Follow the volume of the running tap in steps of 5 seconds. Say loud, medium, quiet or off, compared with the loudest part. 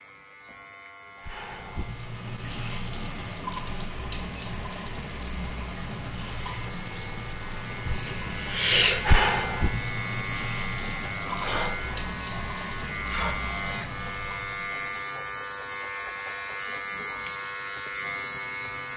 medium, loud, medium, off.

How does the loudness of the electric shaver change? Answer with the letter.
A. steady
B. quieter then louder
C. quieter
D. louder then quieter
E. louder
E.